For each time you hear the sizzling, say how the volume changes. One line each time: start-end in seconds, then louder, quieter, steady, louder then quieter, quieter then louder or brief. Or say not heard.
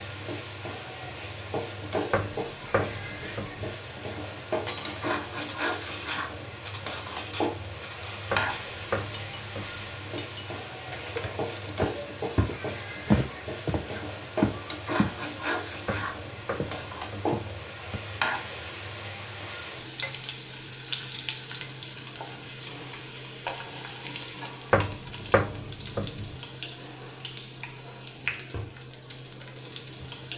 0.0-30.3 steady.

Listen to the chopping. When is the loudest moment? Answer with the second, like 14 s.
25 s.